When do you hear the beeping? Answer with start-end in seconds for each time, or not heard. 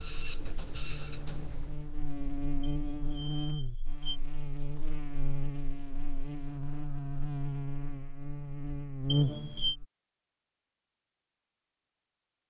2.8-4.2, 9.1-9.8.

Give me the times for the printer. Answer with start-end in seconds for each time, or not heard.
0.0-2.1.